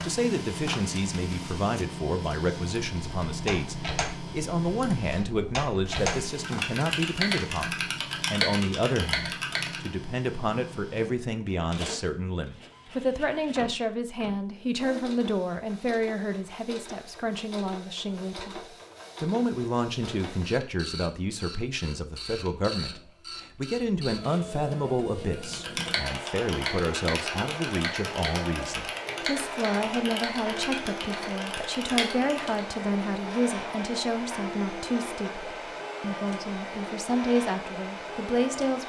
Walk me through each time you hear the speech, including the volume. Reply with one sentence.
You can hear the speech from 0.0 to 38.8 s, at a steady volume.